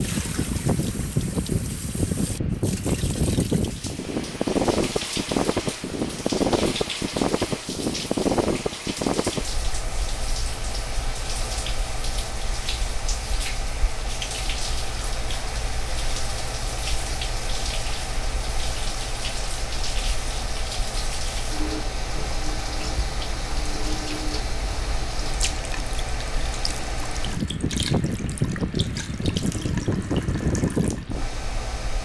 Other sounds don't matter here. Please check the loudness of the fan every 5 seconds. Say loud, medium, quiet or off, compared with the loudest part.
loud, loud, medium, medium, medium, loud, loud.